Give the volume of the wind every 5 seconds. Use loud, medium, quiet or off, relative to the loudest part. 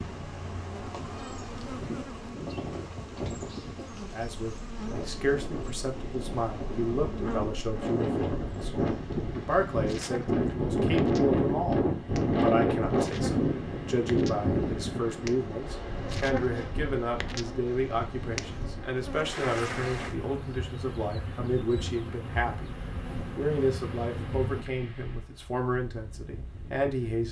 quiet, medium, loud, quiet, quiet, quiet.